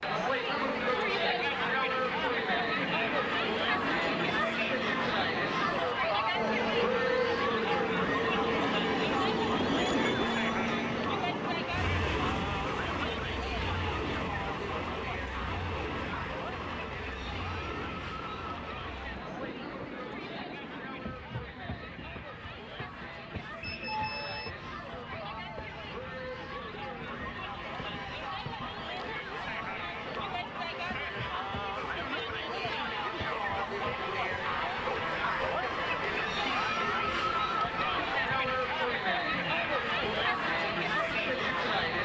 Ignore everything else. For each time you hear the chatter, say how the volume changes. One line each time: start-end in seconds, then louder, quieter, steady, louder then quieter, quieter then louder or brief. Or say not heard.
0.0-42.0 quieter then louder.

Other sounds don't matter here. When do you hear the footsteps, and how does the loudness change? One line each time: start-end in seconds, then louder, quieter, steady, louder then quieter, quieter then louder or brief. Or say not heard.
not heard.